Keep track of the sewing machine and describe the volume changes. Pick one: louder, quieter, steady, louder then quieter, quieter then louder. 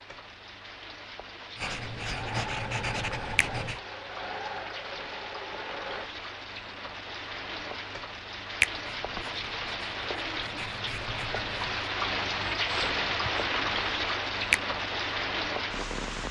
steady.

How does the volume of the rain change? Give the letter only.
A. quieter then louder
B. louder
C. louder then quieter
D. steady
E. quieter
B.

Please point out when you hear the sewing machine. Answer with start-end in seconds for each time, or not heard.
2.0-6.1.